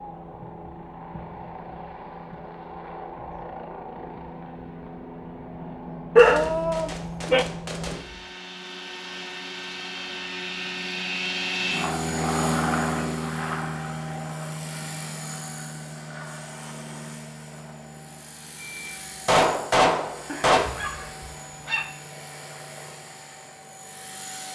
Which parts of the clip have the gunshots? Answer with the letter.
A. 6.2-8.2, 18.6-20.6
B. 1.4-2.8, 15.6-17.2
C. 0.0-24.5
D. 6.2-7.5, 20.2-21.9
A.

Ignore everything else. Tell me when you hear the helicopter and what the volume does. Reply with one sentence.
You can hear the helicopter from 0.0 to 24.5 s, getting louder then quieter.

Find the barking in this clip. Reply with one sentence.
You can hear the barking from 6.2 to 7.5 s and from 20.2 to 21.9 s.